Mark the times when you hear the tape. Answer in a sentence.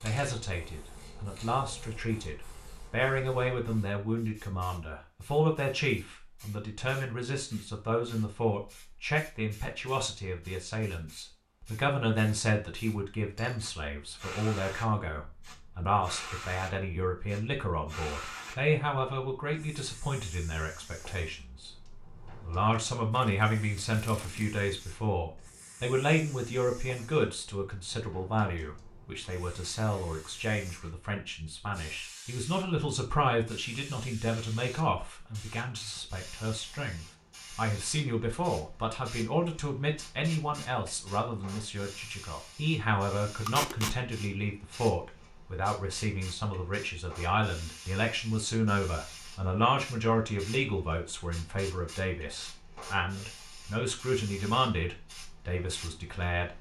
The tape can be heard from 23.1 to 24.4 s and from 43.5 to 44.0 s.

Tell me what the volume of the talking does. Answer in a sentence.
The volume of the talking stays about the same.